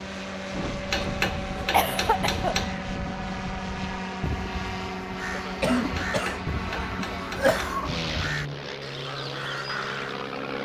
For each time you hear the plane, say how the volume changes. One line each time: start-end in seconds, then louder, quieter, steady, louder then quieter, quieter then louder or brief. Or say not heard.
0.0-10.5 steady.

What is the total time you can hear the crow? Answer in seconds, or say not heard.
10 s.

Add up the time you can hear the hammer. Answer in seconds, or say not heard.
4 s.